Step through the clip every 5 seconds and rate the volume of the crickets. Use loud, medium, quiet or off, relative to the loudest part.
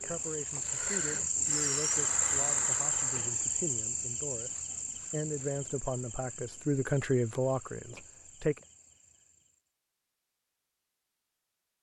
loud, quiet, off.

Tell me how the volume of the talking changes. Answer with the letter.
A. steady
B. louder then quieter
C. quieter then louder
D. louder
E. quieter
D.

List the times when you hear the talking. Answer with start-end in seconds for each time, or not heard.
0.0-8.6.